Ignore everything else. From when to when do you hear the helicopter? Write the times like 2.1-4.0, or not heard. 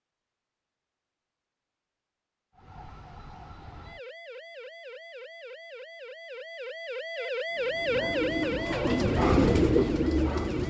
not heard.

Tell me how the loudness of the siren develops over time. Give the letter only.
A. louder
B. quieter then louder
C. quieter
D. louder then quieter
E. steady
D.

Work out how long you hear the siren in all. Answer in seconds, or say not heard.
8 s.